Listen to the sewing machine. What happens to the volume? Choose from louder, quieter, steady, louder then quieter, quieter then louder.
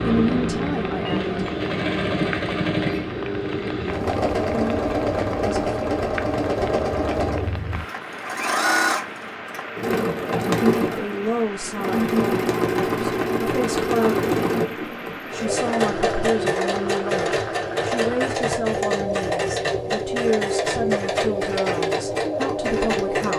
steady.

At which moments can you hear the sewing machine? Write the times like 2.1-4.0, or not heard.
0.0-23.3.